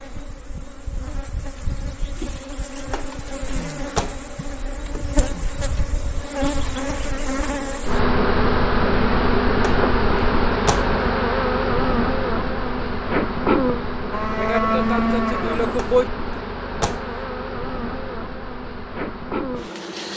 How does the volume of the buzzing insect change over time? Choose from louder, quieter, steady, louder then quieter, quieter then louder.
louder then quieter.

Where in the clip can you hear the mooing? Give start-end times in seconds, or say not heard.
14.1-16.1.